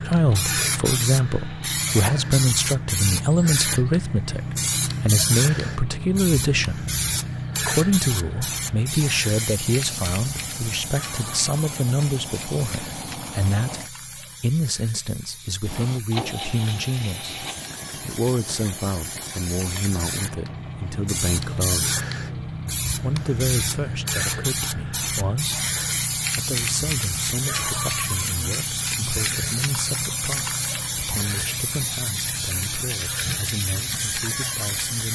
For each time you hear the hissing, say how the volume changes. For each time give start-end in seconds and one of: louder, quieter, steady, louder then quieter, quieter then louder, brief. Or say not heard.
0.0-35.1 quieter then louder.